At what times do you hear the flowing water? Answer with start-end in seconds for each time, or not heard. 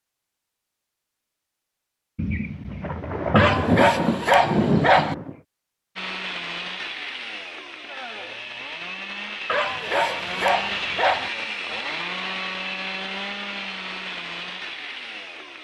not heard.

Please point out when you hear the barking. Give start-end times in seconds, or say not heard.
3.4-5.2, 9.4-11.3.